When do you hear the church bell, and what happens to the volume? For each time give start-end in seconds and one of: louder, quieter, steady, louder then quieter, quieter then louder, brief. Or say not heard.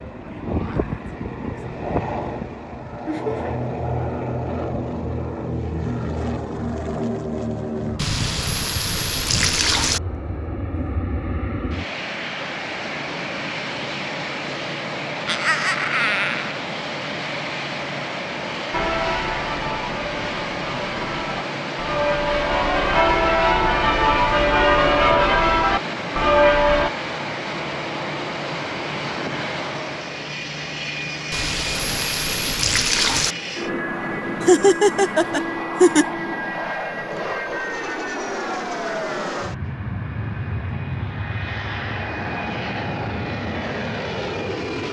18.7-26.9 louder.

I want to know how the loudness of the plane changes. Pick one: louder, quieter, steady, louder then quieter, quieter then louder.
steady.